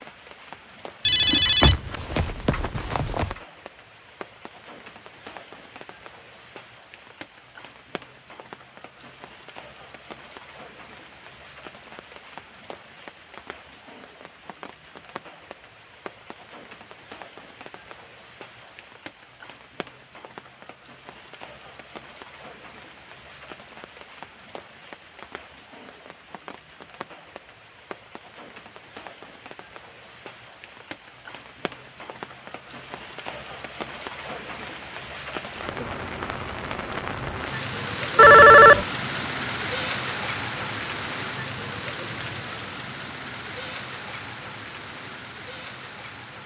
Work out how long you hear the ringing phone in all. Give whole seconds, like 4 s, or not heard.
3 s.